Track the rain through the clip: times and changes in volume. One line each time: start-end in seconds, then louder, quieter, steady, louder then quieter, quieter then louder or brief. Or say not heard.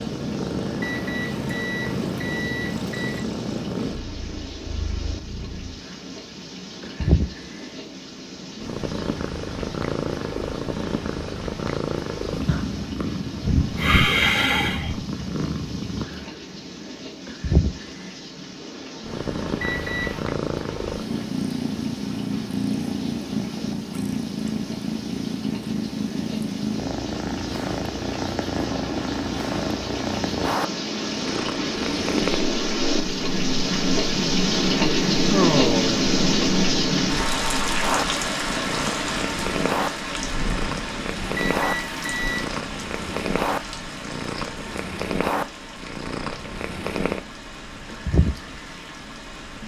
0.0-49.6 louder then quieter.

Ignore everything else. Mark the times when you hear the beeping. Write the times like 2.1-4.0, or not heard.
0.8-3.2, 19.6-20.2, 41.4-42.5.